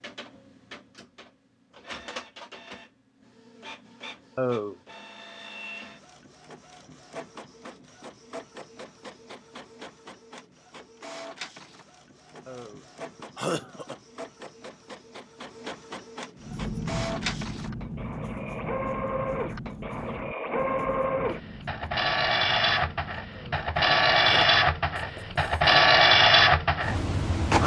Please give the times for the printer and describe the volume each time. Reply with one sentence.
You can hear the printer from 0.0 to 27.6 s, getting louder.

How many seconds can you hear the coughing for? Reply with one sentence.
The coughing can be heard for 3 seconds in total.